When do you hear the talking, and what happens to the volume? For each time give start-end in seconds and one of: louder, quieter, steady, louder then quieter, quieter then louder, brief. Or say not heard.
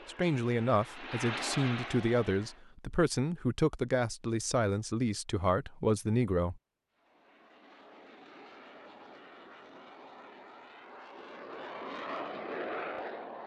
0.1-6.6 steady.